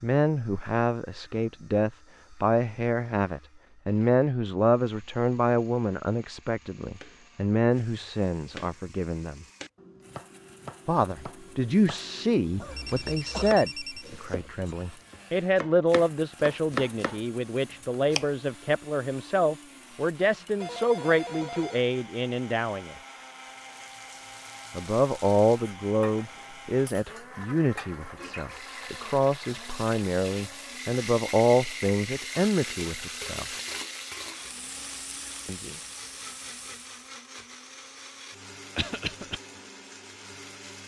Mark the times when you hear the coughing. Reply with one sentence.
The coughing can be heard from 12.6 to 13.6 s and from 38.8 to 39.4 s.